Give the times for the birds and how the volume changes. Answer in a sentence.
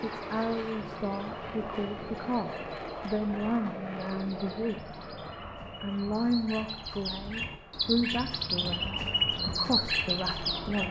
The birds can be heard from 0.0 to 10.8 s, getting louder.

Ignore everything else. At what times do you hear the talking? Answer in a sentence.
You can hear the talking from 0.0 to 5.0 s and from 5.8 to 10.8 s.